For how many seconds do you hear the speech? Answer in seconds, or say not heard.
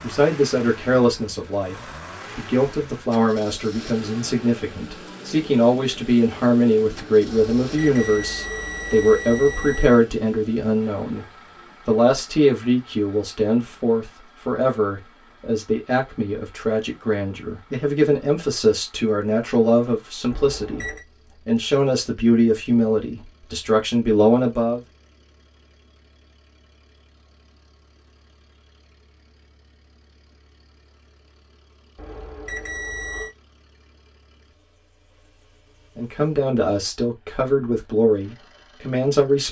28 s.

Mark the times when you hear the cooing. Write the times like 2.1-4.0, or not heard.
not heard.